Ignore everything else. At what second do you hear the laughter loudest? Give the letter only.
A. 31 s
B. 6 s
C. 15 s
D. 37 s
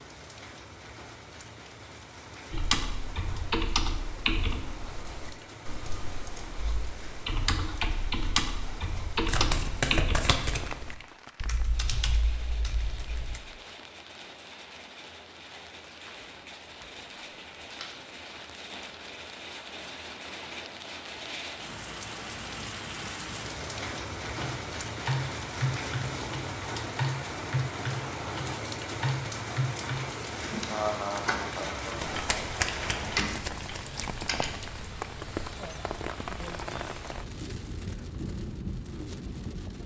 A.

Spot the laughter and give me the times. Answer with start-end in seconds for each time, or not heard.
30.6-32.2.